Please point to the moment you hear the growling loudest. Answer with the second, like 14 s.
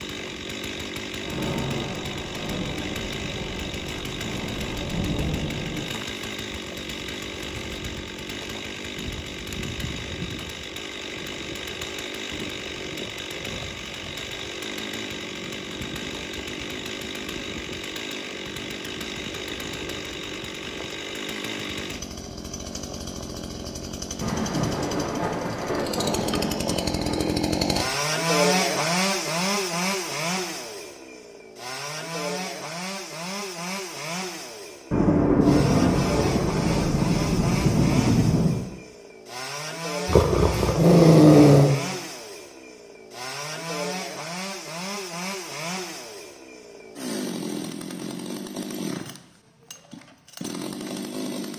41 s.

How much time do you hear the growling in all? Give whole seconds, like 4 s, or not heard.
2 s.